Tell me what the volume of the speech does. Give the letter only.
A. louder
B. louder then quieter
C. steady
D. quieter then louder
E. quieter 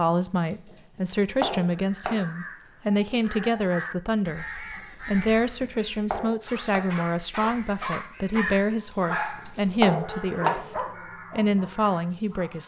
C.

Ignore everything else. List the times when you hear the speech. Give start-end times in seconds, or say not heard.
0.0-4.5, 5.0-12.6.